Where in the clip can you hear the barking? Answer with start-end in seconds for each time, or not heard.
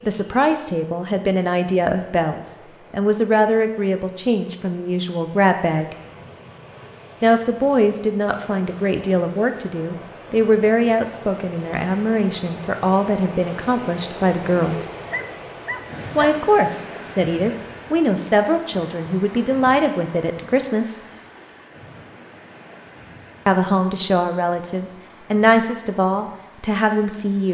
15.1-16.4.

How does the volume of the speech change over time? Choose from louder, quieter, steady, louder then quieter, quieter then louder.
steady.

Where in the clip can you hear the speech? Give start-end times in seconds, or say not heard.
0.0-6.0, 7.2-14.9, 16.1-21.0, 23.4-27.4.